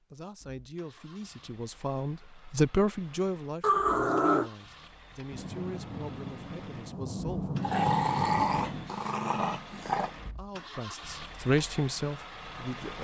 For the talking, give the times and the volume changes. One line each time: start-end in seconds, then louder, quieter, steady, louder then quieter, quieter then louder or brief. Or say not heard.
0.1-7.5 louder then quieter
10.2-13.0 brief.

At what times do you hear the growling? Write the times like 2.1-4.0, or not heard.
3.6-4.5, 7.6-10.1.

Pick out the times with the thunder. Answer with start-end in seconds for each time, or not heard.
5.3-8.9.